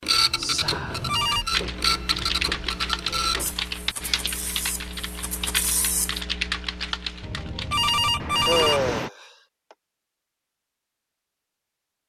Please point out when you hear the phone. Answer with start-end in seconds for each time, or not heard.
0.6-1.4, 7.2-8.9.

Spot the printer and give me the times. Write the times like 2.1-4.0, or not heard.
0.0-6.2.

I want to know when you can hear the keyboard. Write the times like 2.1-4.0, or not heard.
1.5-9.1.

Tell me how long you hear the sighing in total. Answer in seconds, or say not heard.
2 s.